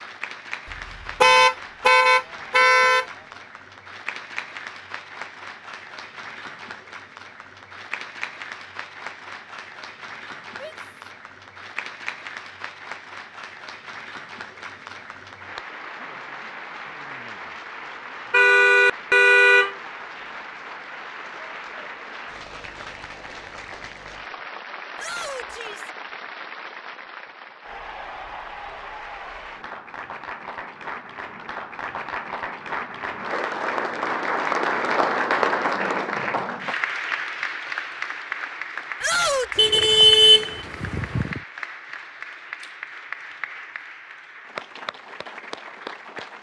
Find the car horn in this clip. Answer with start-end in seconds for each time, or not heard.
1.2-3.0, 18.3-19.7, 39.5-41.4.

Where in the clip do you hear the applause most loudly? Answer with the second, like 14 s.
35 s.